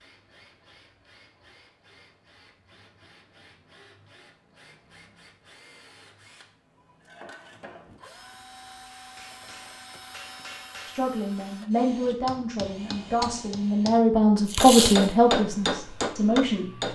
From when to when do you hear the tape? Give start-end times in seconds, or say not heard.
14.4-15.1.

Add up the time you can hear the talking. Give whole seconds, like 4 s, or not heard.
6 s.